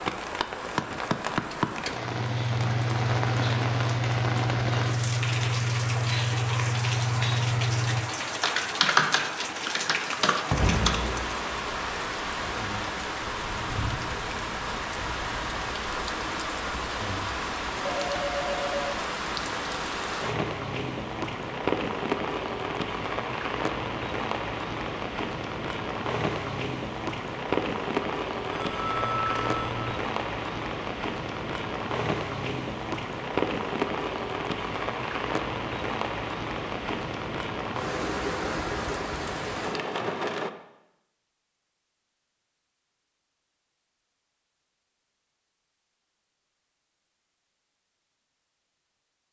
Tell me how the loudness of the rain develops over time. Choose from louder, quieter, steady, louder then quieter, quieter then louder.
steady.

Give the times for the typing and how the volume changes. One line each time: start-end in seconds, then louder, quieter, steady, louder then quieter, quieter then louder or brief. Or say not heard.
1.9-11.4 steady.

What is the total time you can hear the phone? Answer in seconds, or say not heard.
3 s.